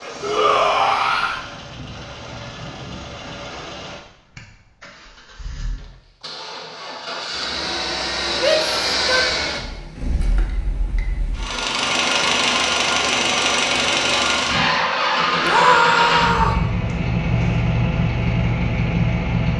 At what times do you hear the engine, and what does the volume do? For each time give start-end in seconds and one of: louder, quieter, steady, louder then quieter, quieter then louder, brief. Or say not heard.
0.0-19.5 louder.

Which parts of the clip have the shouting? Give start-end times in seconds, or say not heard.
0.2-1.4, 8.4-9.3, 15.4-16.6.